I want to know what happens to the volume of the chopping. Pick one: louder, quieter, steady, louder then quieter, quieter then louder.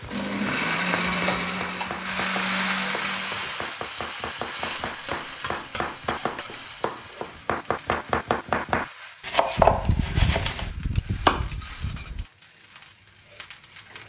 louder.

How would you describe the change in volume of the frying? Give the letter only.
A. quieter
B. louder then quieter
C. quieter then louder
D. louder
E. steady
A.